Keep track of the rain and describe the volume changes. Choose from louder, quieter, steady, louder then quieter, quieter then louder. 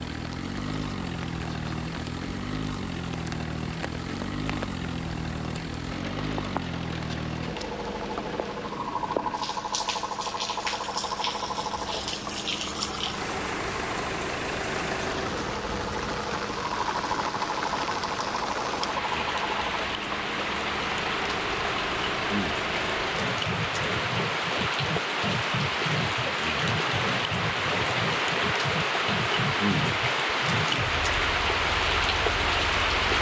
louder.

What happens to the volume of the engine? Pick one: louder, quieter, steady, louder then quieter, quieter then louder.
steady.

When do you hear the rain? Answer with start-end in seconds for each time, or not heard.
0.0-33.1.